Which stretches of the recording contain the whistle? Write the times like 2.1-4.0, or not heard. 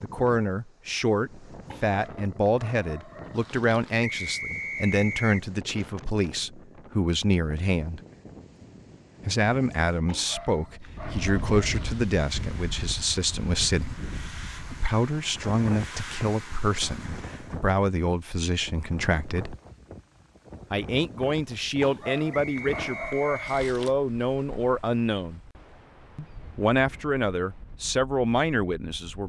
4.0-5.5, 22.3-23.6.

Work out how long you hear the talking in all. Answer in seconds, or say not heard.
26 s.